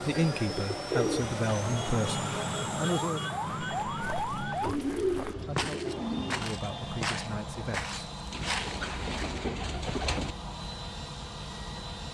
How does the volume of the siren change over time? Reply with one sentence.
The volume of the siren goes up.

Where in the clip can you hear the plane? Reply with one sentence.
The plane can be heard from 0.0 to 12.0 s.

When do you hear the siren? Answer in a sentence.
The siren can be heard from 0.0 to 4.8 s.